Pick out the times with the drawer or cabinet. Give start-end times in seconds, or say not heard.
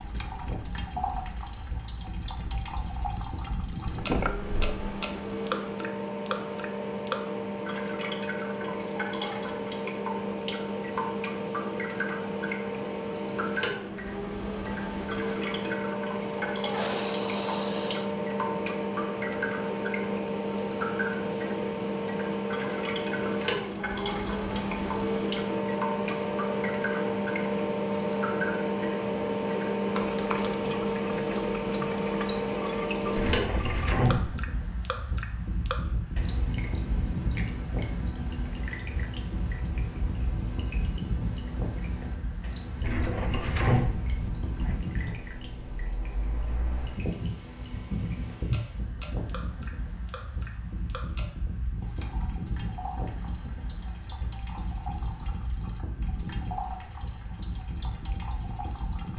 3.9-4.8, 33.1-34.4, 42.8-44.8.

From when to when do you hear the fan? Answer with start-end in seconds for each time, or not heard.
0.0-59.1.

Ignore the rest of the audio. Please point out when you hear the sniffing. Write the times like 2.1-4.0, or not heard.
16.7-18.1.